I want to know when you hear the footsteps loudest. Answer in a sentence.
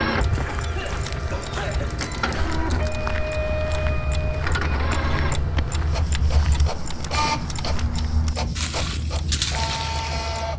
The loudest moment of the footsteps is at 9 seconds.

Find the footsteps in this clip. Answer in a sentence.
The footsteps can be heard from 0.1 to 9.9 s.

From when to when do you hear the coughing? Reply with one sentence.
The coughing can be heard from 0.4 to 1.9 s.